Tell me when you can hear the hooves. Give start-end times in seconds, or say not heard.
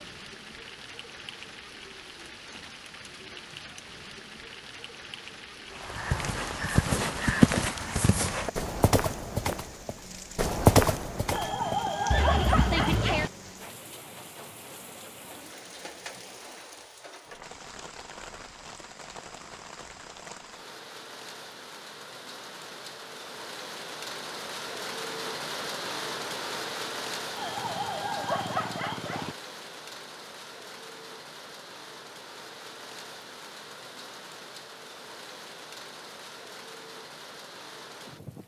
5.8-13.2.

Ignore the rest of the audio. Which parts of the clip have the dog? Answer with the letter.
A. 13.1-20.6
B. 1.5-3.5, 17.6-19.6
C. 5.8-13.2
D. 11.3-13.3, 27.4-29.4
D.